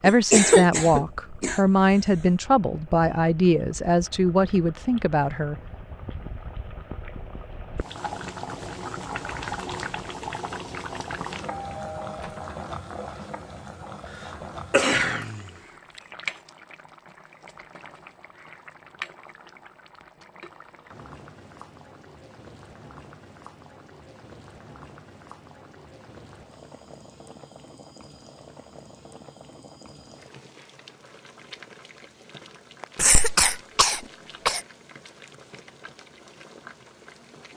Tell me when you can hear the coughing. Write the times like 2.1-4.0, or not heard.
0.1-2.2, 14.7-15.4, 33.0-34.6.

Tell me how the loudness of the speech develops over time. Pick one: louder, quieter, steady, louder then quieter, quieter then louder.
steady.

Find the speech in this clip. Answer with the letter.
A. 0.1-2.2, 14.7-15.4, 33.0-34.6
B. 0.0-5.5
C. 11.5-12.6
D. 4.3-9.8
B.